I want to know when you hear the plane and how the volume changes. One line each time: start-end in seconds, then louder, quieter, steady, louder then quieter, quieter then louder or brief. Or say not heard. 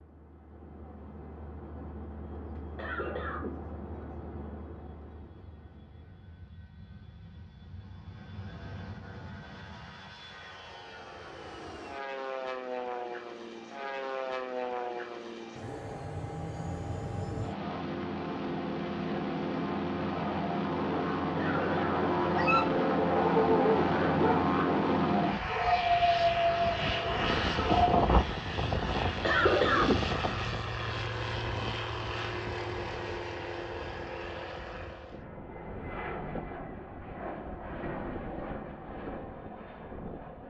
0.0-40.4 louder then quieter.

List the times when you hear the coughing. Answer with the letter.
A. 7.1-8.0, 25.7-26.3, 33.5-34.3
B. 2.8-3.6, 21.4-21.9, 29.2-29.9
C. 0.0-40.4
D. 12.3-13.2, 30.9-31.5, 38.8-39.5
B.